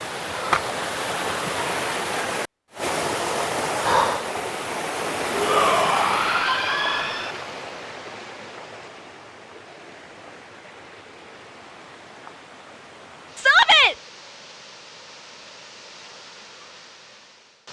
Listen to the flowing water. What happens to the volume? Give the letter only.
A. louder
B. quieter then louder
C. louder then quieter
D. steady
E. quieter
E.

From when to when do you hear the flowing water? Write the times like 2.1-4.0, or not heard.
0.0-17.6.